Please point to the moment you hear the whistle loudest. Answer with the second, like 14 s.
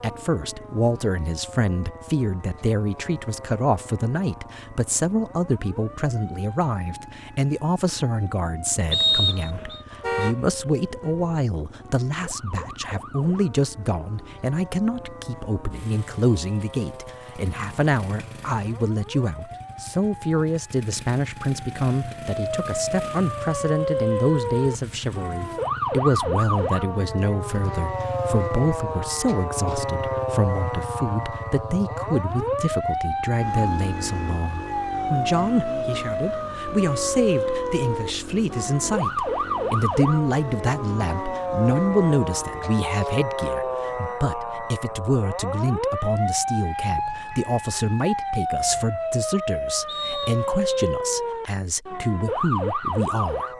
9 s.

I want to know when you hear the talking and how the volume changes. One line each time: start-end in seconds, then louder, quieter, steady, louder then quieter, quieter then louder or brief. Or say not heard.
0.0-53.5 steady.